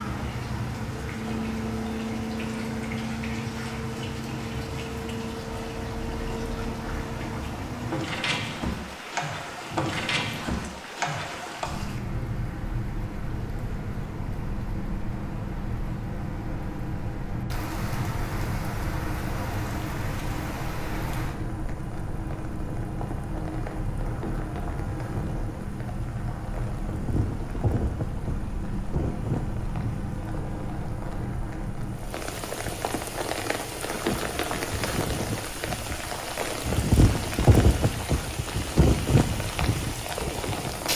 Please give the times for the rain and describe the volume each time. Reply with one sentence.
You can hear the rain from 0.0 to 40.9 s, getting louder.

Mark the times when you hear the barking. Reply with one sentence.
You can't hear the barking here.